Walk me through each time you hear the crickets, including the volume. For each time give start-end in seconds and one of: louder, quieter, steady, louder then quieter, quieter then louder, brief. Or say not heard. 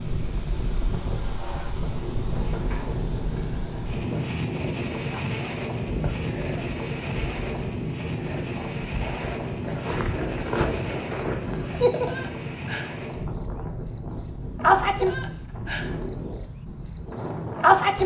0.0-18.0 louder.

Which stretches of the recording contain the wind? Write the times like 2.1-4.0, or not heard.
0.0-18.0.